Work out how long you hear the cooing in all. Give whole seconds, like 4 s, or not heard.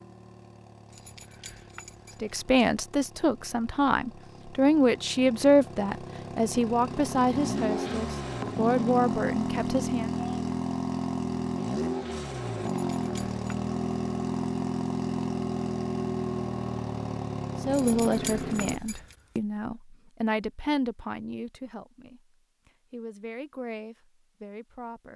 not heard.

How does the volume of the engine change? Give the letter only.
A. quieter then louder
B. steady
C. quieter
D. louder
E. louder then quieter
D.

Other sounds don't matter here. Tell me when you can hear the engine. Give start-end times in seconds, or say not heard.
0.0-18.8.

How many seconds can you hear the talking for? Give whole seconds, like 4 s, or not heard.
15 s.